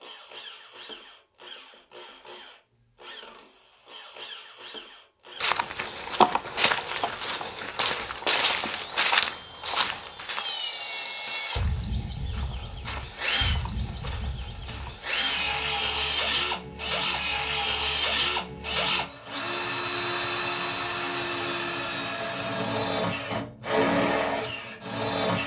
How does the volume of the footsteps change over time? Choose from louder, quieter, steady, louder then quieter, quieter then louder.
quieter.